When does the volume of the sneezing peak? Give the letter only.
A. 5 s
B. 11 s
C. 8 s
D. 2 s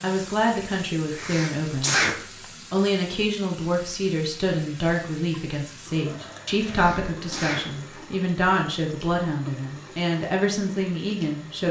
D.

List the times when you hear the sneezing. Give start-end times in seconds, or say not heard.
1.1-2.5, 6.7-8.0.